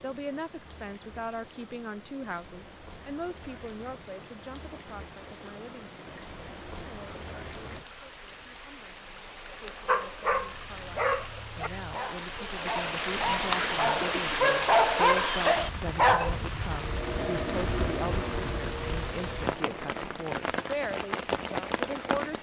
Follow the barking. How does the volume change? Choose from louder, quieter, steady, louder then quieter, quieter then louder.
quieter then louder.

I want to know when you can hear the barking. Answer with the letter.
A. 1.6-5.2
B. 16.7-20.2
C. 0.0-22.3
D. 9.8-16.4
D.